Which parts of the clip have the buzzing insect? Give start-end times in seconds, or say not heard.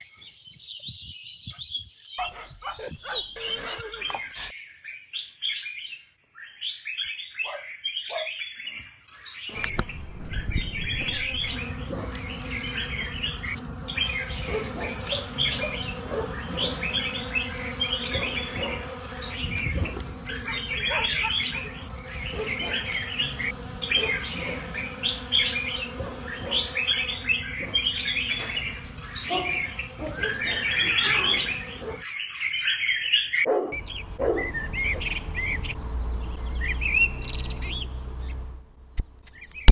9.4-32.0.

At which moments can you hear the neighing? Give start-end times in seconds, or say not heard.
3.4-4.5, 19.4-20.2, 30.1-31.6.